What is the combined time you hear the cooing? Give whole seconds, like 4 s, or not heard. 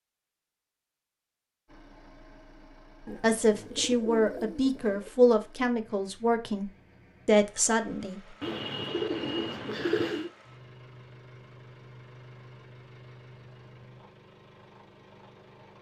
4 s.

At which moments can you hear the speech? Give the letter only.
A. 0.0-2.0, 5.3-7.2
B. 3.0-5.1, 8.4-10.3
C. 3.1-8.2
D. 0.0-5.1
C.